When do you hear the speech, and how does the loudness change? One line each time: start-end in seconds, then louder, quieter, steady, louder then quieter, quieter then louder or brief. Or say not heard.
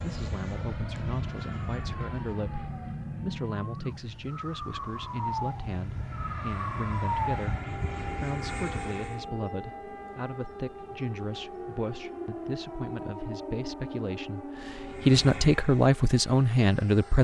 0.0-7.5 steady
8.2-17.1 louder.